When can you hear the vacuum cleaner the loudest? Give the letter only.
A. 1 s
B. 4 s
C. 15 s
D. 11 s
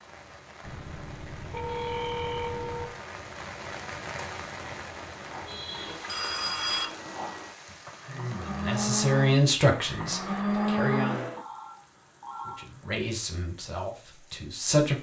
D.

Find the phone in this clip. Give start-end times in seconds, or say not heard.
0.6-2.9, 5.7-6.9, 11.3-12.7.